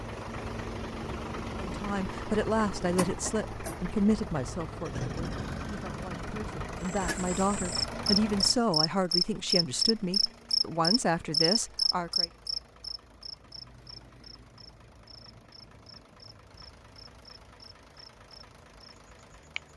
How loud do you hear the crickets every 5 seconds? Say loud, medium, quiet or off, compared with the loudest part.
off, loud, loud, quiet.